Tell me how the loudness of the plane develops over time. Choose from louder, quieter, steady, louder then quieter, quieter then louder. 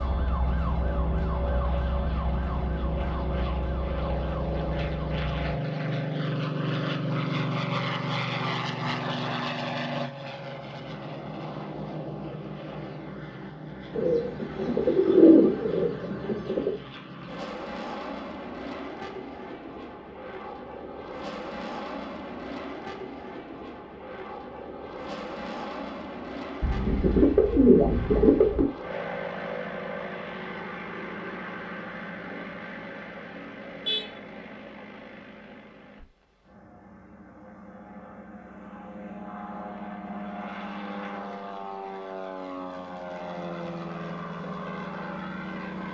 quieter.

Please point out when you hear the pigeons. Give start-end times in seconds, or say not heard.
13.9-16.7, 26.6-28.6.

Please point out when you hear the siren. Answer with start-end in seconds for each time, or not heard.
0.0-5.5.